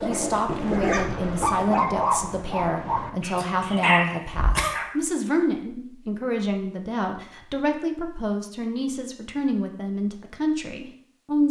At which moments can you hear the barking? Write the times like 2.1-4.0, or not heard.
0.0-5.0.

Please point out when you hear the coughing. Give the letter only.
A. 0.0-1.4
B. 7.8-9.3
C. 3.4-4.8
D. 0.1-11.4
C.